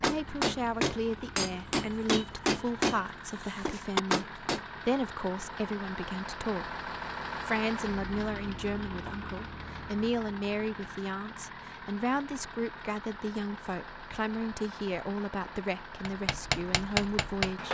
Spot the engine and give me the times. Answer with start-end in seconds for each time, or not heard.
0.0-17.6.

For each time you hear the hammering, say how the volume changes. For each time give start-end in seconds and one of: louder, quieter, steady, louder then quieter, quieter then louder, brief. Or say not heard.
0.0-4.6 steady
16.1-17.6 brief.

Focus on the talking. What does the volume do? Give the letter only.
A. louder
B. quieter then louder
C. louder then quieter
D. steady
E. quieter
D.